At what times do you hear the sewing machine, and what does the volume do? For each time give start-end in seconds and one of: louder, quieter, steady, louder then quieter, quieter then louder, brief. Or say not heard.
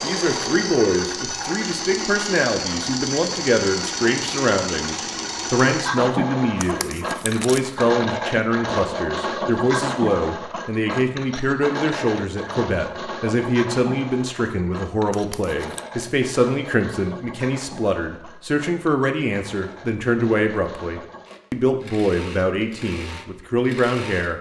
0.0-24.3 quieter.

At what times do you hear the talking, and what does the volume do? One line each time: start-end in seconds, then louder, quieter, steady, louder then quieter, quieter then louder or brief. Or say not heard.
0.0-24.3 steady.